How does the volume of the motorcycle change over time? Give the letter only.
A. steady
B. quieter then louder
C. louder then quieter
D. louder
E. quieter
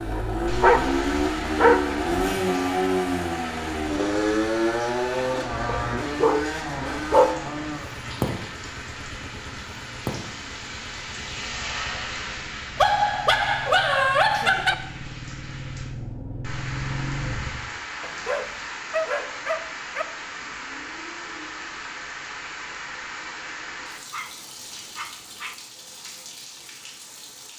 B.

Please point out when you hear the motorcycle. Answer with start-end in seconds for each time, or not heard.
0.0-17.7.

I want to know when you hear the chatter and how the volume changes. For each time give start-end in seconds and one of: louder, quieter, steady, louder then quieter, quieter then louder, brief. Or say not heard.
not heard.